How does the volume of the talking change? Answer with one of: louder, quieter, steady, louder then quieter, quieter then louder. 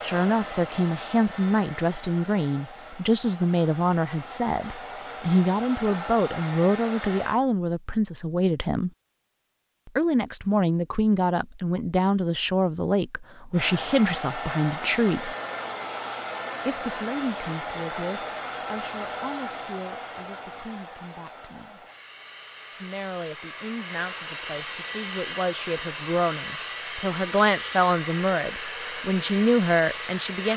quieter then louder.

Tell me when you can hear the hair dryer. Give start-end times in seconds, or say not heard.
0.0-7.3, 13.5-30.5.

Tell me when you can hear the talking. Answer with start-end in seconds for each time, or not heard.
0.0-8.9, 9.8-15.3, 16.6-21.9, 22.8-30.5.